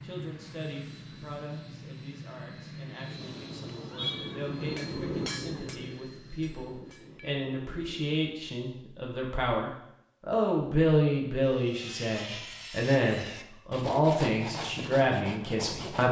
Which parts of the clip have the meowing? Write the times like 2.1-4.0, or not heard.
3.1-5.0.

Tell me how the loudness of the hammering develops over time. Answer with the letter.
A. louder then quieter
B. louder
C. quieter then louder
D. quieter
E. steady
A.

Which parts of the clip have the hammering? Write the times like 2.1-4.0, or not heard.
3.0-8.2.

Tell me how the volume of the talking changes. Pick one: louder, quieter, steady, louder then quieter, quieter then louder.
louder.